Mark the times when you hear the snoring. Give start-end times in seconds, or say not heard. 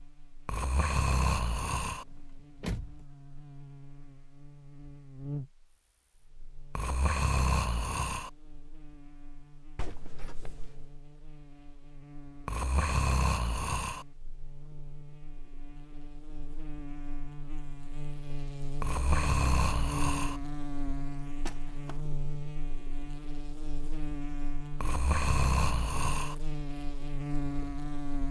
0.5-2.0, 6.8-8.3, 12.4-14.1, 18.8-20.4, 24.8-26.4.